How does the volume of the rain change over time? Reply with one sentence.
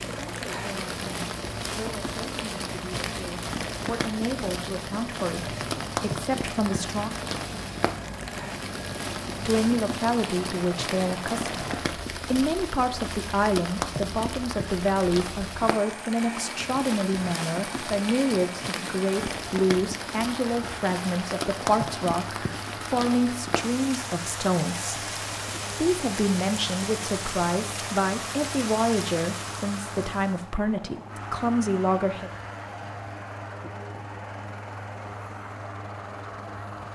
The loudness of the rain stays about the same.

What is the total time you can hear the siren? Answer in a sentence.
You can't hear the siren here.